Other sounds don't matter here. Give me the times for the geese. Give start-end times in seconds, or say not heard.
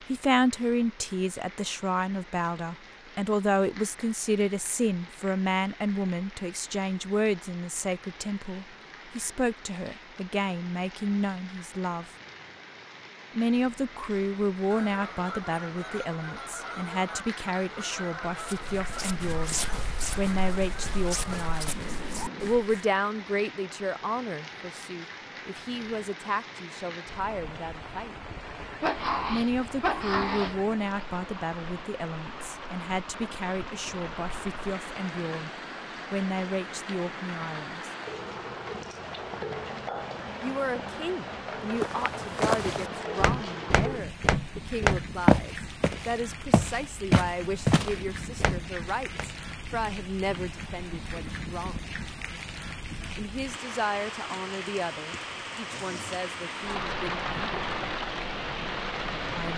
14.7-22.6.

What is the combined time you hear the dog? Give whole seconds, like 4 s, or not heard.
2 s.